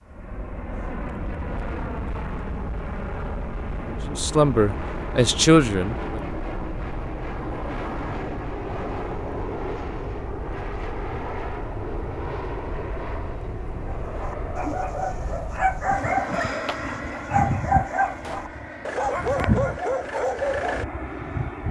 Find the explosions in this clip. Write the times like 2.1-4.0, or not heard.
18.2-18.6.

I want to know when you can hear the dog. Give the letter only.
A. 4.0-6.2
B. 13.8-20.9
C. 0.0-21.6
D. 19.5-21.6
B.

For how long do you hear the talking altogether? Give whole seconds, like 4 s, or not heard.
2 s.